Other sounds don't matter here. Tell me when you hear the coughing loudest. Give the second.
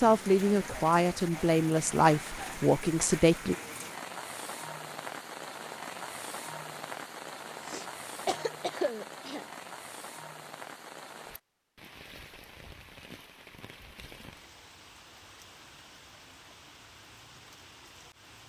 9 s.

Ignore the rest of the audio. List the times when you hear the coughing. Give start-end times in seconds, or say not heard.
7.6-9.4.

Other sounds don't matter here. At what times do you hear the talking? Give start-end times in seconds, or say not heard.
0.0-3.5.